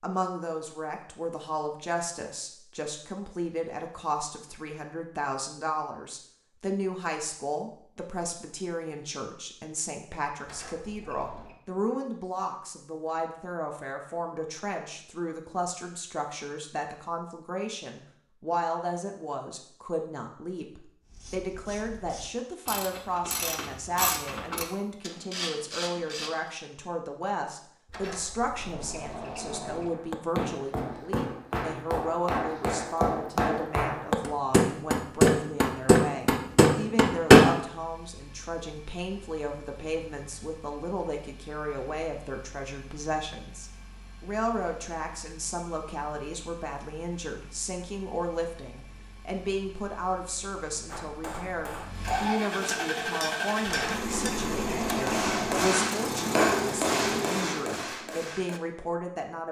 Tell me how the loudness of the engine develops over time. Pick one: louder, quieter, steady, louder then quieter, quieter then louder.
louder.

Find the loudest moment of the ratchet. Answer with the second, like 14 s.
24 s.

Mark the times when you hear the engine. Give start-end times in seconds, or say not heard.
37.6-57.7.